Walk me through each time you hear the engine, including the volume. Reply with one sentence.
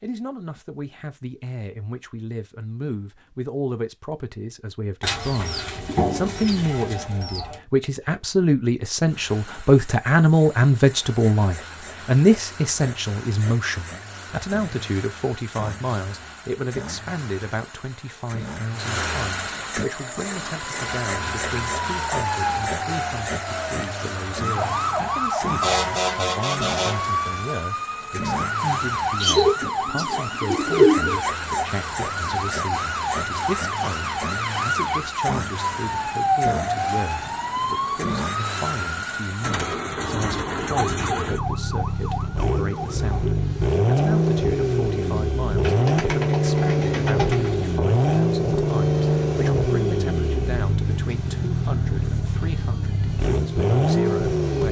The engine can be heard from 9.1 to 54.6 s, getting louder.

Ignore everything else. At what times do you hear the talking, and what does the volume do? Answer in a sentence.
The talking can be heard from 0.0 to 54.6 s, getting quieter.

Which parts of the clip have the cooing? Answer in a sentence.
You can hear the cooing from 5.0 to 7.5 s, from 29.2 to 31.2 s and from 45.6 to 47.5 s.